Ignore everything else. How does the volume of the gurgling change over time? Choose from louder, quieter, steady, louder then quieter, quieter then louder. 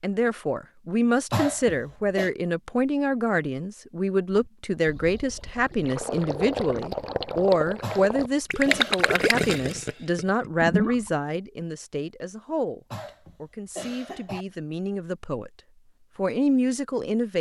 louder then quieter.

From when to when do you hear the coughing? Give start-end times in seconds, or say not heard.
1.3-2.3, 7.8-8.9, 12.9-14.4.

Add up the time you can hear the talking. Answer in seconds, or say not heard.
17 s.